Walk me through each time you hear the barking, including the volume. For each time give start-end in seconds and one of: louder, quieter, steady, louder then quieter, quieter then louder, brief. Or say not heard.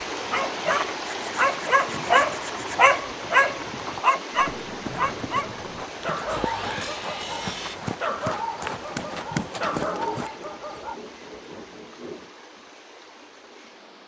0.1-11.0 quieter.